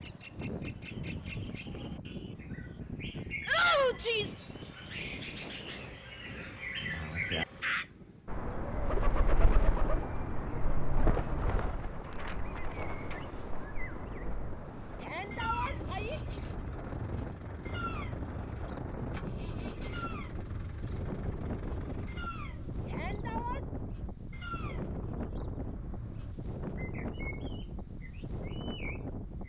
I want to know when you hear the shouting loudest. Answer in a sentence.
The volume of the shouting peaks at 4 seconds.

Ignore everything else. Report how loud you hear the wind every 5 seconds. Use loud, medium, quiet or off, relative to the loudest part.
loud, medium, medium, loud, loud, loud.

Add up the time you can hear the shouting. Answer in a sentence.
You can hear the shouting for 3 seconds altogether.